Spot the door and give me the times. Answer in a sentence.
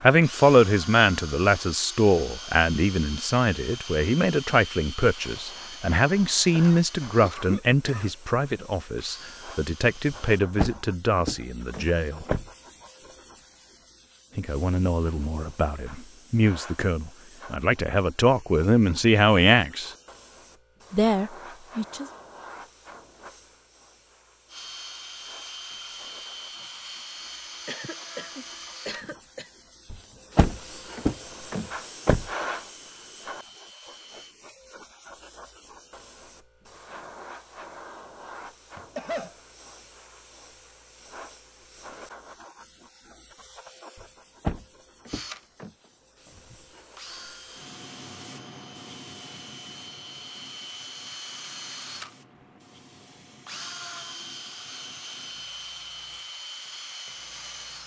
The door can be heard from 10.1 to 12.5 s, from 29.9 to 32.3 s and from 44.0 to 45.7 s.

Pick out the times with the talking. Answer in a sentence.
The talking can be heard from 0.0 to 12.2 s, from 14.3 to 19.9 s and from 20.9 to 22.1 s.